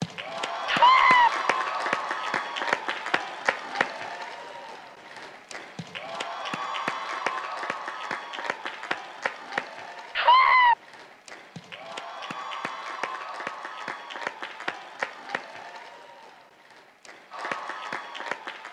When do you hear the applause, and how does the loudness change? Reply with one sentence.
You can hear the applause from 0.0 to 18.6 s, getting quieter.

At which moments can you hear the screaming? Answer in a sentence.
You can hear the screaming from 0.7 to 1.3 s and from 10.2 to 10.8 s.